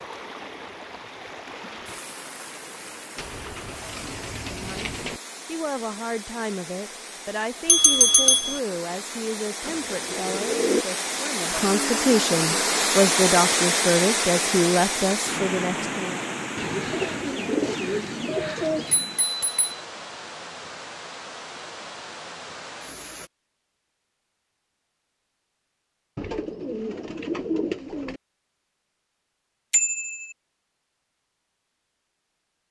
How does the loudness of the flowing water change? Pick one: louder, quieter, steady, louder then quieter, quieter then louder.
louder then quieter.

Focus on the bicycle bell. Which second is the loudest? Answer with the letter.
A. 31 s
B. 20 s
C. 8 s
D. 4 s
C.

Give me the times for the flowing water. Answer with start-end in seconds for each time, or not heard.
0.0-23.3.